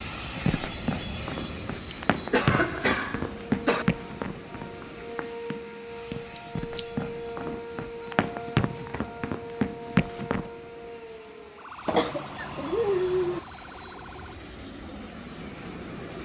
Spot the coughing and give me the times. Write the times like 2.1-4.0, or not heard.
1.9-3.9, 6.3-6.8, 11.8-13.4.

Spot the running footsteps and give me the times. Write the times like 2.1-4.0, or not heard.
0.1-10.5.